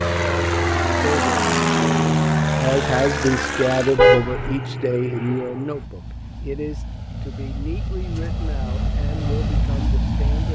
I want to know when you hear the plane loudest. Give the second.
2 s.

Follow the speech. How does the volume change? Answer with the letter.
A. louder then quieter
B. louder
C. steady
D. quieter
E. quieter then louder
D.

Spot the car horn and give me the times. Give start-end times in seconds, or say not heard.
4.0-4.5.